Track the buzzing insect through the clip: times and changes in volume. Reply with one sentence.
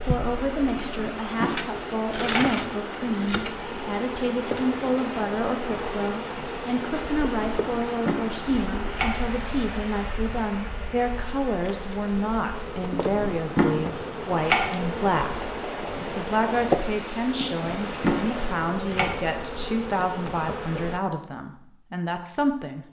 You can hear the buzzing insect from 0.0 to 21.0 s, getting quieter then louder.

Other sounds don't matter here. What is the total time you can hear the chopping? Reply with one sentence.
You can hear the chopping for 7 seconds altogether.